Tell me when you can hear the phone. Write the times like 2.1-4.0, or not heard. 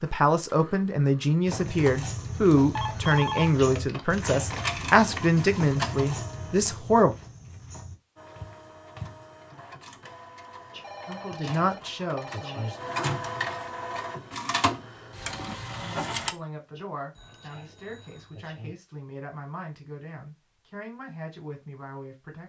2.8-4.8, 10.8-12.8, 17.1-18.5.